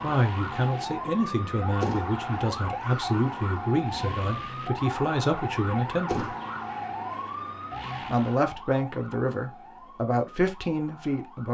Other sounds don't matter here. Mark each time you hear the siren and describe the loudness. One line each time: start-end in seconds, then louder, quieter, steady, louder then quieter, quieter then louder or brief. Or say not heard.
0.0-11.5 quieter.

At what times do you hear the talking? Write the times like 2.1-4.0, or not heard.
0.0-6.2, 8.1-11.5.